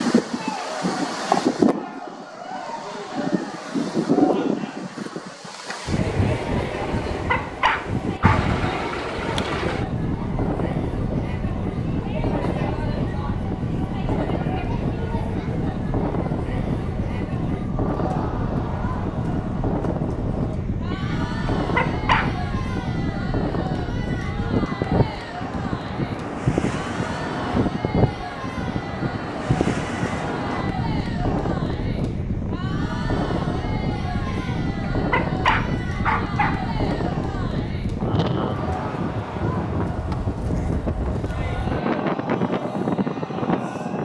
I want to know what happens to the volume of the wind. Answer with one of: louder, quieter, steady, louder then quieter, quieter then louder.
steady.